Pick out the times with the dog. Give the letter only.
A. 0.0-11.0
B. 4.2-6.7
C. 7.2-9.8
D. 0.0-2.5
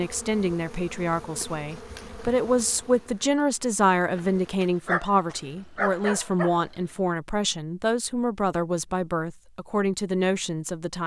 B.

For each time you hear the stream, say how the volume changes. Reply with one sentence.
The stream can't be heard in this clip.